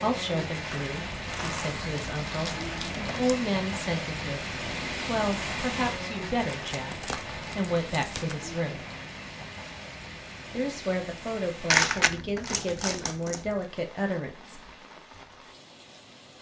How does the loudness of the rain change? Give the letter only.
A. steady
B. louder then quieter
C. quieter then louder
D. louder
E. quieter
E.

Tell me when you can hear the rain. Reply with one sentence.
You can hear the rain from 0.0 to 16.3 s.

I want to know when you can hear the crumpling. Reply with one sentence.
You can hear the crumpling from 0.7 to 3.5 s, from 6.5 to 8.3 s and from 11.7 to 13.4 s.